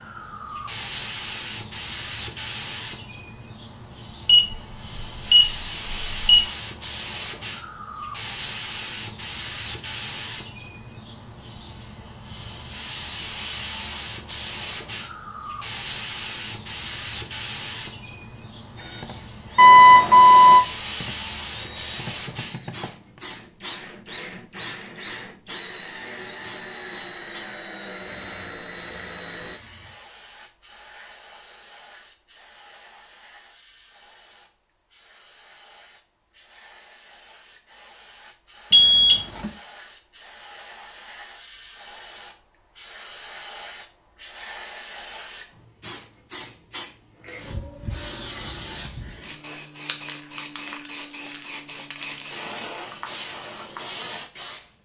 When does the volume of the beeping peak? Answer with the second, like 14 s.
20 s.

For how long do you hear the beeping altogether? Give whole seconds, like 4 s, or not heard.
4 s.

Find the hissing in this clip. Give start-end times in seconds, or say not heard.
0.0-54.7.